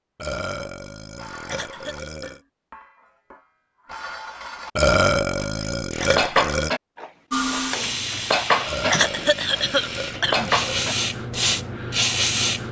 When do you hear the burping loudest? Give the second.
5 s.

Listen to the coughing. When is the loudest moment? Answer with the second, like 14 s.
9 s.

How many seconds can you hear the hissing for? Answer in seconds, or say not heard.
5 s.